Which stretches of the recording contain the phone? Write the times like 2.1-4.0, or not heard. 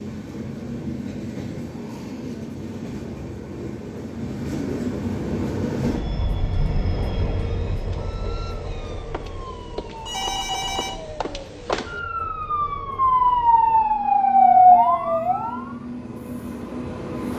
10.0-11.1.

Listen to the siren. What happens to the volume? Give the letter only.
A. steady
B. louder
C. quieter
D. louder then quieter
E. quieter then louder
B.